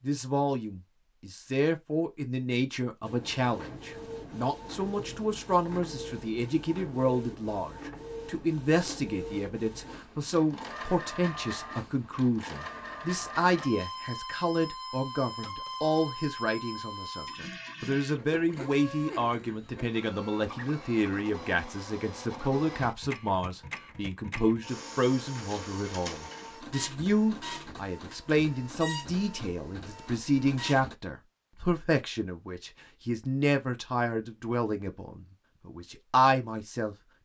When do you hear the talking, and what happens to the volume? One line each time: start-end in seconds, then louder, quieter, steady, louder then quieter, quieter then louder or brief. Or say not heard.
0.1-37.0 steady.